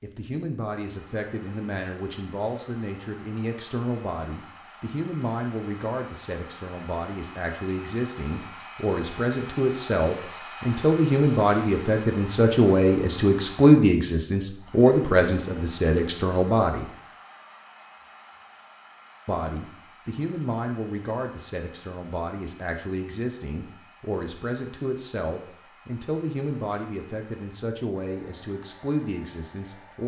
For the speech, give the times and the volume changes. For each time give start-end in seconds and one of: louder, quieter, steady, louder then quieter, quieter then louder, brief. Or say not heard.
0.0-16.9 louder
19.2-30.0 steady.